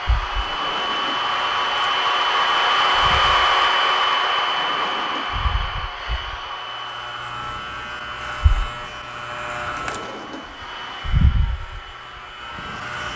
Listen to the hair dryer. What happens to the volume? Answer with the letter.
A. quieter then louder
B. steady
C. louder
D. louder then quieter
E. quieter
E.